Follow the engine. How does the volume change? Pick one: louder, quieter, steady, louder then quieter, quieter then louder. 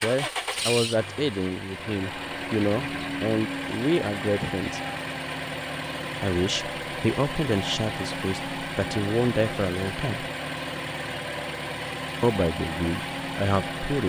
steady.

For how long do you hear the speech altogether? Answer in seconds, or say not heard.
11 s.